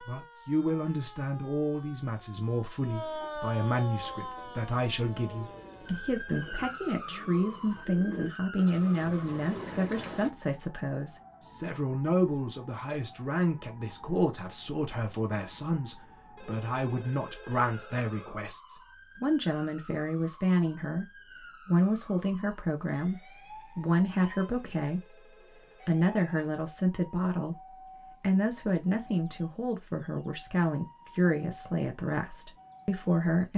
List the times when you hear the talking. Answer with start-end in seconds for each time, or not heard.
0.0-33.5.